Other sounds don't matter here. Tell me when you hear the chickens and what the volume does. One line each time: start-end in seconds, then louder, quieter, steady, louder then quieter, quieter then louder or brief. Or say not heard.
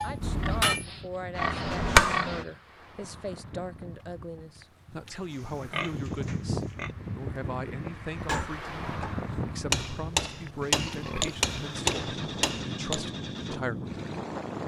not heard.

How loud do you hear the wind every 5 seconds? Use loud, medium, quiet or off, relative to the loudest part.
medium, loud, loud.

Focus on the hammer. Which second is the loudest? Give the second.
2 s.